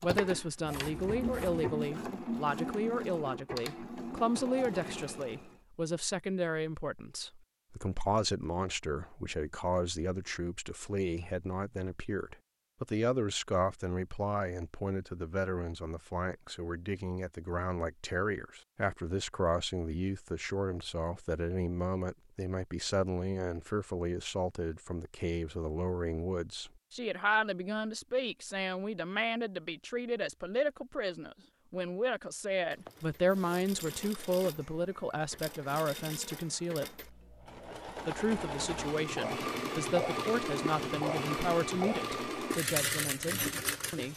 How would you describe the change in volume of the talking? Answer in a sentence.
The loudness of the talking stays about the same.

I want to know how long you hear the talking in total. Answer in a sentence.
You can hear the talking for 43 seconds altogether.